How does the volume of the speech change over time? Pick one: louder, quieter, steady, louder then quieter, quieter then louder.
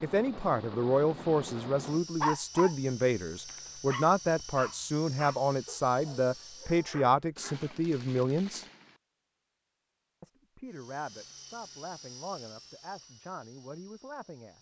quieter.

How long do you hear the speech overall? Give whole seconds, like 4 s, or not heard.
13 s.